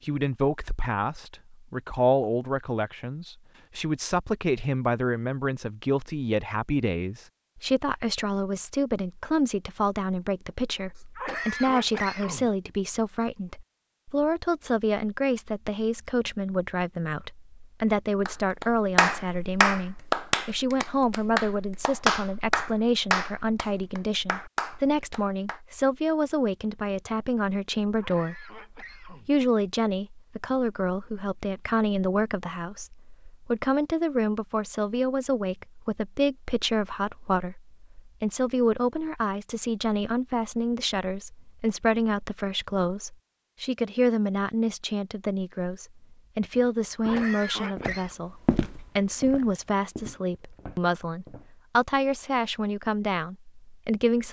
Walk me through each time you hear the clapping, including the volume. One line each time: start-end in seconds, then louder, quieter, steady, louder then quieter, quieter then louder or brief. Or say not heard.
18.2-25.6 quieter.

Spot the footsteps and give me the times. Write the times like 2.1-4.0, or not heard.
46.4-51.5.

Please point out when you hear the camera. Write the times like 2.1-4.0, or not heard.
not heard.